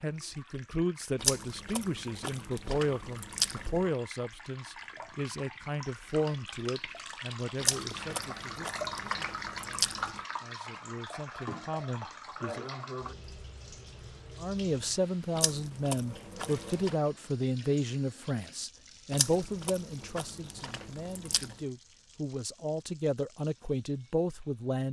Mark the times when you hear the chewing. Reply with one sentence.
The chewing can be heard from 1.1 to 3.9 s, from 7.6 to 10.2 s, from 15.3 to 16.9 s and from 19.1 to 21.6 s.